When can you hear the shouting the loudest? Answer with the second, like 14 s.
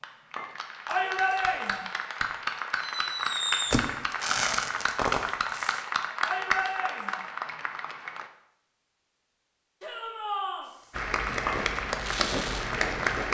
1 s.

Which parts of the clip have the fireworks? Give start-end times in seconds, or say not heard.
2.8-5.8, 10.7-13.2.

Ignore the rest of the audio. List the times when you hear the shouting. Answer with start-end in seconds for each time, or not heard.
0.8-1.9, 6.2-7.2, 9.8-10.7.